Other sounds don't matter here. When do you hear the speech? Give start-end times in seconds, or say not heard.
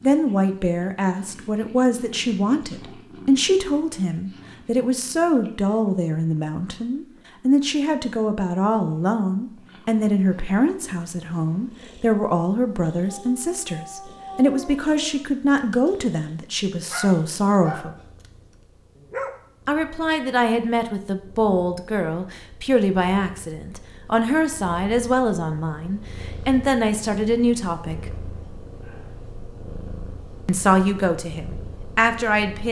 0.0-17.9, 19.6-28.1, 30.4-32.6.